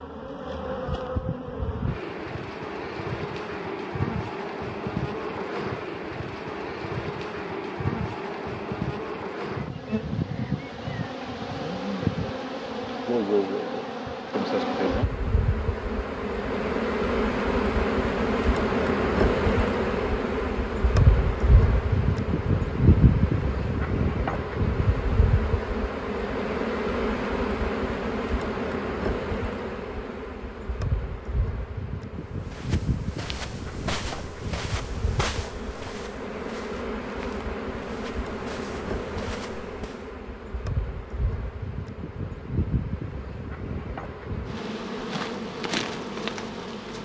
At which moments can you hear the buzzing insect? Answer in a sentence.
The buzzing insect can be heard from 0.0 to 46.9 s.